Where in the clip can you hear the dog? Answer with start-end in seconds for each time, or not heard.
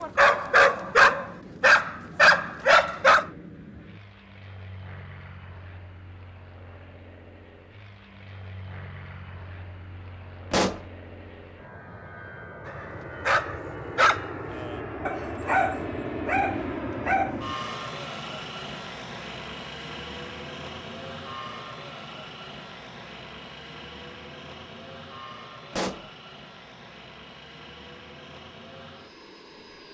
0.0-3.2, 12.7-17.4.